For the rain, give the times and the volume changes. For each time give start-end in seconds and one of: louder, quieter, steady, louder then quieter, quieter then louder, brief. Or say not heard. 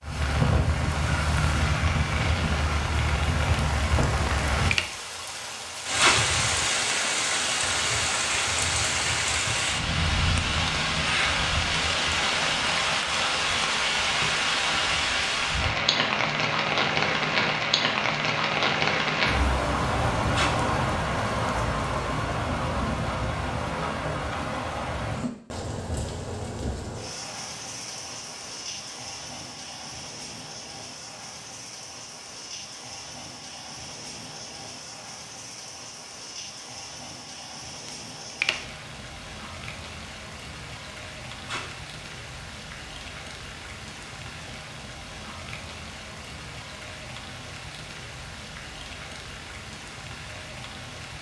0.0-51.1 quieter.